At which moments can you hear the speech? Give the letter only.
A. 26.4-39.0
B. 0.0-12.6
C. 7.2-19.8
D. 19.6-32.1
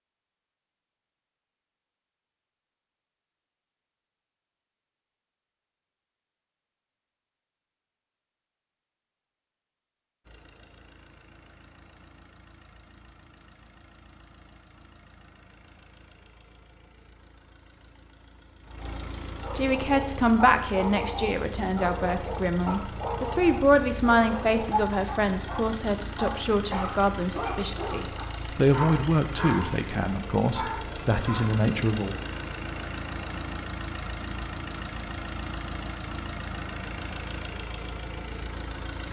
D.